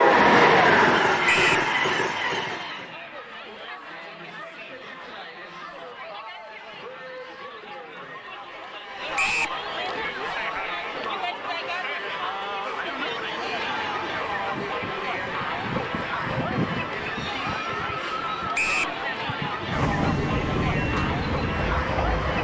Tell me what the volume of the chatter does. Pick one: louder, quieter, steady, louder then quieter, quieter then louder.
louder.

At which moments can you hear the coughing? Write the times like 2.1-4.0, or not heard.
not heard.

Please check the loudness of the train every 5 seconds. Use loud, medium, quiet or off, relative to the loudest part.
loud, off, quiet, quiet, medium.